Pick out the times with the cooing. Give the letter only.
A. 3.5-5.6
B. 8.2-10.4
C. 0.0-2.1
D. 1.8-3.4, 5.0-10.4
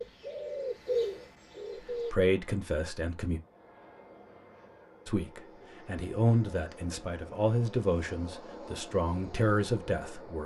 C.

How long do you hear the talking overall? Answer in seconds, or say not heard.
7 s.